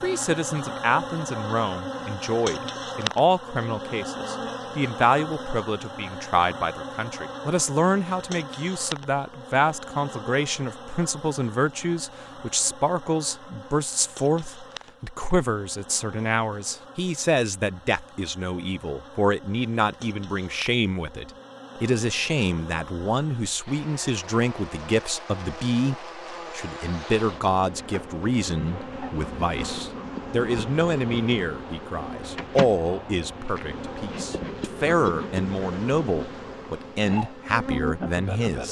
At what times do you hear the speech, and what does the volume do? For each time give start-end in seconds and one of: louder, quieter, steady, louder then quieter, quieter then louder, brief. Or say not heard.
0.0-38.6 steady.